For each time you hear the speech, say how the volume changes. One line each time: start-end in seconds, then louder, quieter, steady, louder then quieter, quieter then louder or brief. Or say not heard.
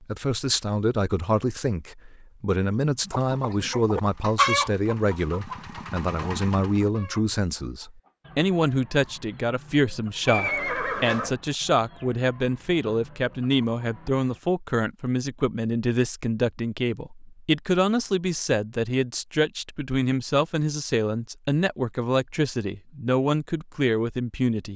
0.0-24.7 steady.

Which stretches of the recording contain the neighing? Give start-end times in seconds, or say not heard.
10.2-11.3.